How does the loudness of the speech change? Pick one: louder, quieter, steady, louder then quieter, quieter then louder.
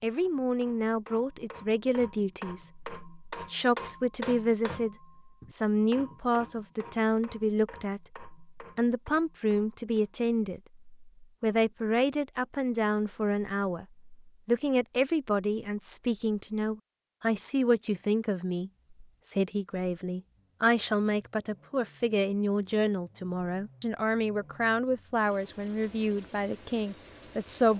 steady.